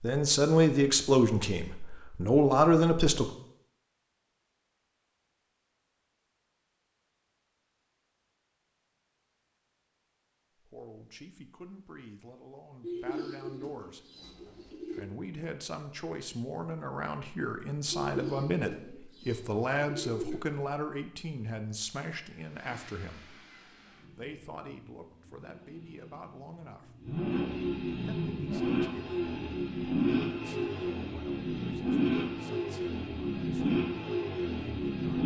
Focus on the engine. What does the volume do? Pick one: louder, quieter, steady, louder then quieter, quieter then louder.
louder.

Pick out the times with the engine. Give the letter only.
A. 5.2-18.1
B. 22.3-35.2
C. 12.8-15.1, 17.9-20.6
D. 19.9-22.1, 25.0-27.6
B.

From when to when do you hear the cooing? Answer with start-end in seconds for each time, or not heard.
12.8-15.1, 17.9-20.6.